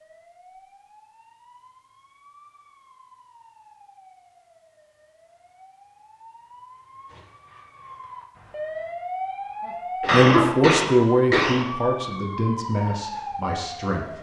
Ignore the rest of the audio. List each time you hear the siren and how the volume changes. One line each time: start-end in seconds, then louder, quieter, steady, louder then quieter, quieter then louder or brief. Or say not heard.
0.0-14.1 louder.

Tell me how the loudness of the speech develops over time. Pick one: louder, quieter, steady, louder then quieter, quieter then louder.
quieter.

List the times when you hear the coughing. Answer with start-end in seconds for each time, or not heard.
10.0-11.7.